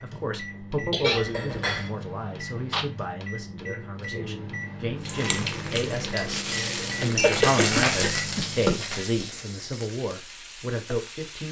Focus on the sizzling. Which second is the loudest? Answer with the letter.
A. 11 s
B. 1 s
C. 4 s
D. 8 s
D.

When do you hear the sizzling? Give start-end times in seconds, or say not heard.
5.0-11.4.